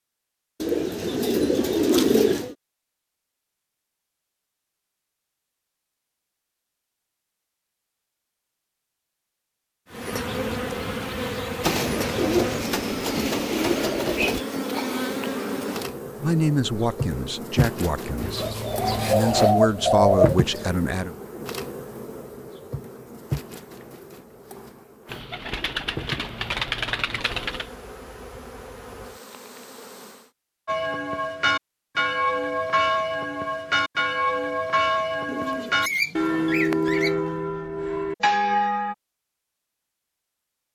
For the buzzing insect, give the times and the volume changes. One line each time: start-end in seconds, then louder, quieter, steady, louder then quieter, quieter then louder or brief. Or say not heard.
9.9-30.3 quieter.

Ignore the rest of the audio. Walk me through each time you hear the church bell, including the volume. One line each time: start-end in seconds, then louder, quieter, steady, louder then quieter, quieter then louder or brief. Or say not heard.
30.6-39.0 steady.